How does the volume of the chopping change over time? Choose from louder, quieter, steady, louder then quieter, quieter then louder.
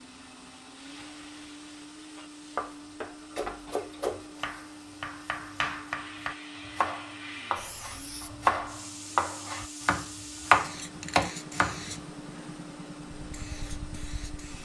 louder.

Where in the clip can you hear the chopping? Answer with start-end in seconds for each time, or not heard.
2.5-11.8.